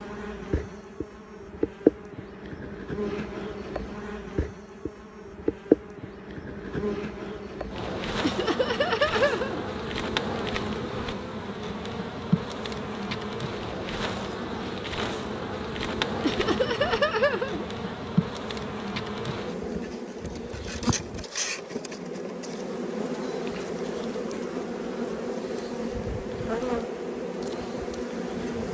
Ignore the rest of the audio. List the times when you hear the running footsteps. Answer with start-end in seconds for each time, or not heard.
not heard.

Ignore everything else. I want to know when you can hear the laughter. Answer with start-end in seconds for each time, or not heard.
8.2-10.1, 16.2-18.1.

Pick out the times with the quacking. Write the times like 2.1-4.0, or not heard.
not heard.